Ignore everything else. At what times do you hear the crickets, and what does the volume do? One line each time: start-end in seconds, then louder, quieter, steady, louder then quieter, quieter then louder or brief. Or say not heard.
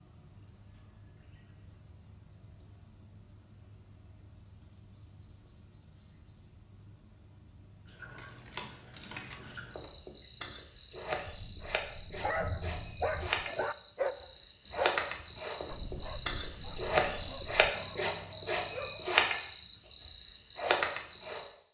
0.0-21.7 louder.